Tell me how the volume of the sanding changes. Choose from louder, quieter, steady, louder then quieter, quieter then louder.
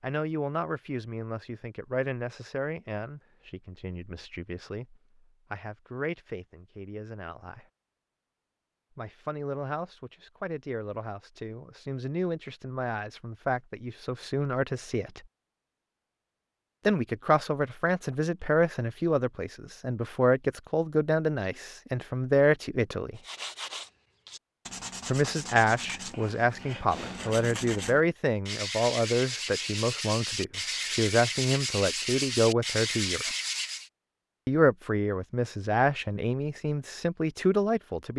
louder.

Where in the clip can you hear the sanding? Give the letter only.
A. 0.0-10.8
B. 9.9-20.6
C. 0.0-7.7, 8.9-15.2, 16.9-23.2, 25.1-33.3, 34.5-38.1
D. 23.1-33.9
D.